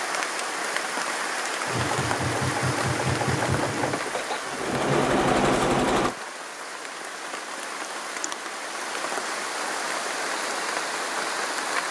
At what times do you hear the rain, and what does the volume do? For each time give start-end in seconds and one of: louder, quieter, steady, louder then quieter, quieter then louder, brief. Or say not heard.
0.0-11.8 quieter then louder.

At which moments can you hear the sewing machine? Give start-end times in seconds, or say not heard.
1.6-6.2.